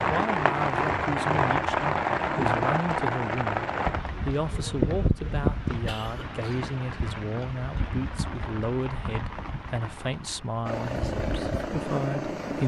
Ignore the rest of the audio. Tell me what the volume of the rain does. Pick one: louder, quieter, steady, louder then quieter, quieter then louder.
quieter.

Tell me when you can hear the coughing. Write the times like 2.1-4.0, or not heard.
5.8-6.7.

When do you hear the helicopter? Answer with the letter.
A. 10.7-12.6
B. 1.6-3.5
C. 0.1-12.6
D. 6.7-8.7
A.